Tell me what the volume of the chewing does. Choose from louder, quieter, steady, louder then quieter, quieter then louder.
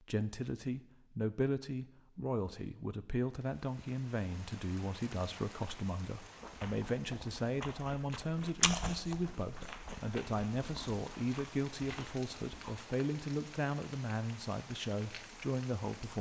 louder then quieter.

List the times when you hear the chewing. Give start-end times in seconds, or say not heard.
6.2-12.8.